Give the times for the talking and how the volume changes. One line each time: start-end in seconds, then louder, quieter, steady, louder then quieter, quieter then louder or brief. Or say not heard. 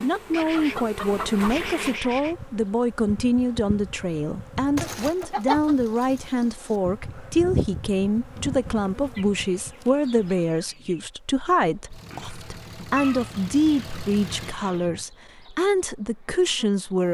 0.0-17.0 steady.